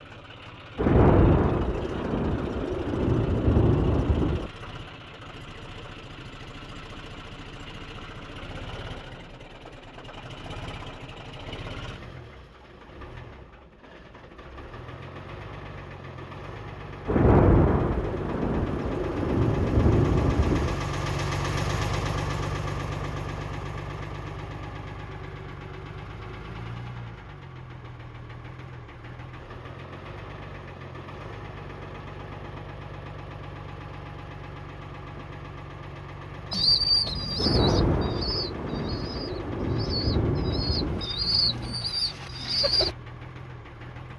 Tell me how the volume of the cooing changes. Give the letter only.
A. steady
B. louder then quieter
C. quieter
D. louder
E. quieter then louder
E.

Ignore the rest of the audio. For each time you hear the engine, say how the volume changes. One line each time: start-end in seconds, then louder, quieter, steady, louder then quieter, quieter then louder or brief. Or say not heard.
0.0-44.1 louder then quieter.